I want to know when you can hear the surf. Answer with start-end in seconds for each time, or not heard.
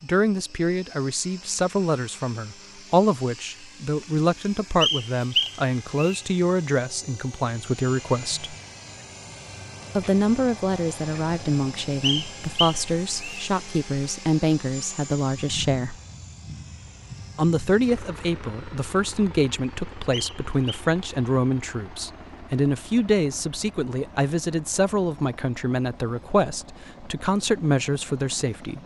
not heard.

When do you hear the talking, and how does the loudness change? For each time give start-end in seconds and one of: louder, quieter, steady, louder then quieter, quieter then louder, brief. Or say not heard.
0.0-8.6 steady
9.9-15.9 steady
17.4-28.8 steady.